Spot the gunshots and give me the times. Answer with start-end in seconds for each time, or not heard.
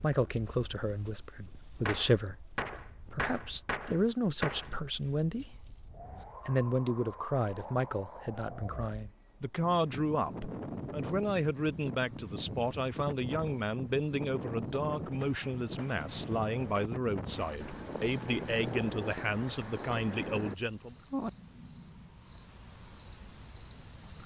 1.9-4.8, 15.0-16.9.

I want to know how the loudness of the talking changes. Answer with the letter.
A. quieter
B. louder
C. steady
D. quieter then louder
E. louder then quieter
C.